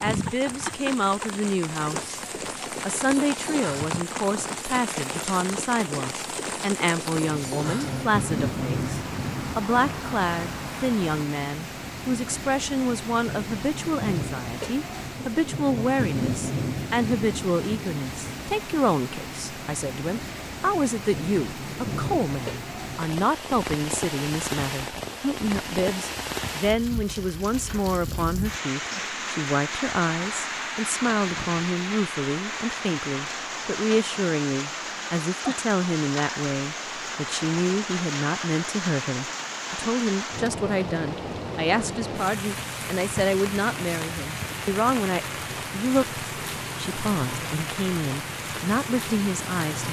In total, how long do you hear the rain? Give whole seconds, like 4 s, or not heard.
50 s.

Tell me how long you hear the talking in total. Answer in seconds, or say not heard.
49 s.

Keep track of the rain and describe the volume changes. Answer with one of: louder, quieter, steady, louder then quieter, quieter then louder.
steady.